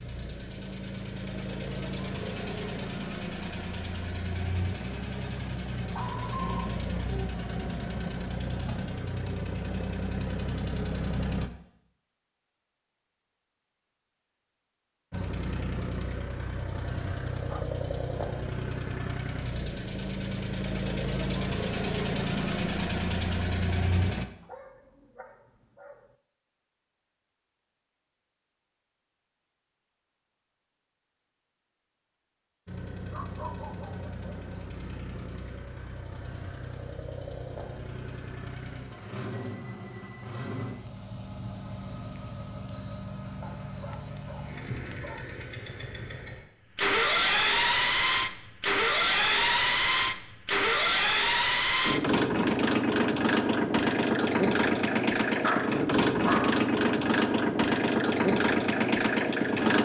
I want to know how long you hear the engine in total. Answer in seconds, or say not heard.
48 s.